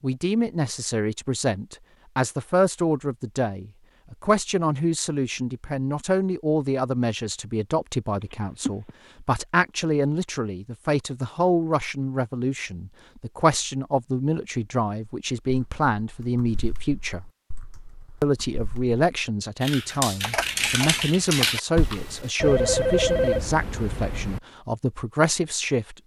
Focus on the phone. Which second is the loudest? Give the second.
23 s.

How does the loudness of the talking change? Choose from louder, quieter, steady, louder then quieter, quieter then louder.
steady.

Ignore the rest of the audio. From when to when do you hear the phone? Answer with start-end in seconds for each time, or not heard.
8.2-8.9, 22.4-24.4.